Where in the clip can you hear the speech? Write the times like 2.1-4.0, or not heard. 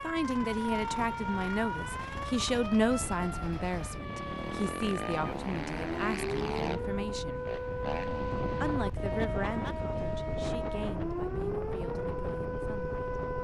0.0-7.5, 8.6-12.9.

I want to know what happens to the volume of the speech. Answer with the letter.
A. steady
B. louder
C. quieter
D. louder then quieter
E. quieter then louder
C.